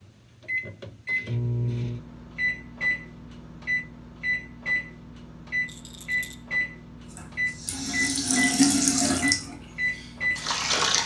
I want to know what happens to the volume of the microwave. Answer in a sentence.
The volume of the microwave stays about the same.